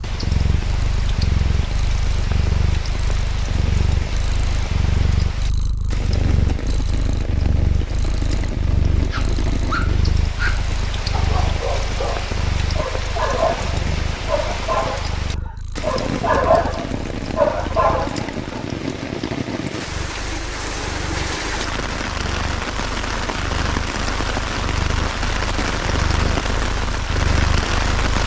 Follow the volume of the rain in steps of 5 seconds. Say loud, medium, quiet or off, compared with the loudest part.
medium, medium, medium, loud, loud, loud.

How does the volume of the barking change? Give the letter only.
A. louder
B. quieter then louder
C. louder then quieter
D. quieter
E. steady
A.